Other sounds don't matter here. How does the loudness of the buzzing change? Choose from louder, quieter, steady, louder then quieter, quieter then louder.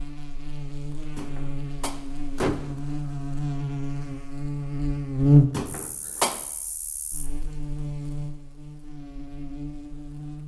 louder then quieter.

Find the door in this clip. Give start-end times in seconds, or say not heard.
1.1-2.8, 5.5-6.3.